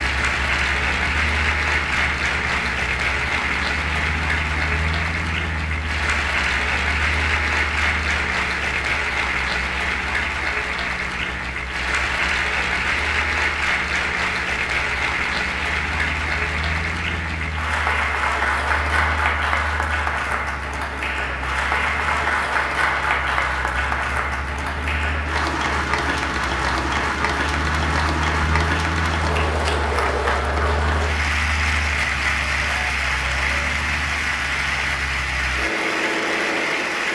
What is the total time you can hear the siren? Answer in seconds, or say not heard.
not heard.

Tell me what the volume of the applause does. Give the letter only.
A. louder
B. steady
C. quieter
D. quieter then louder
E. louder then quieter
B.